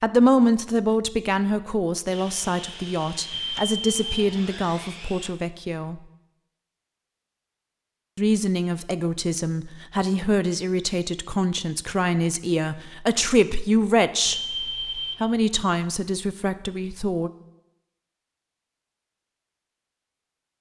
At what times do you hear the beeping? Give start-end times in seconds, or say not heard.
3.3-4.2, 14.2-15.2.